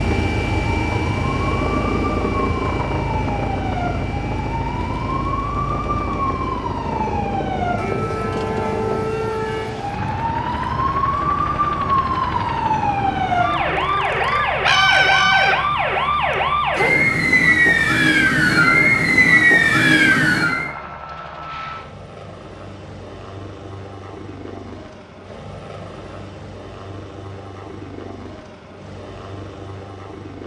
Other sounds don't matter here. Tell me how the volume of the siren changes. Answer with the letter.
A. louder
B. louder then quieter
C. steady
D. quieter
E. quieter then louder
A.